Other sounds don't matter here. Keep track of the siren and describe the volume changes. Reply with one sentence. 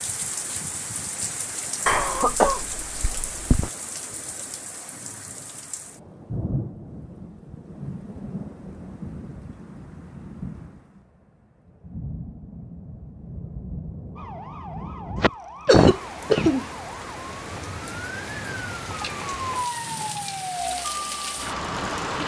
The loudness of the siren goes up.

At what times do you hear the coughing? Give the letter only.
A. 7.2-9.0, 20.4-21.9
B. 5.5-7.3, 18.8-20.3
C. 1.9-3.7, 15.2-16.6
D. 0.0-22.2
C.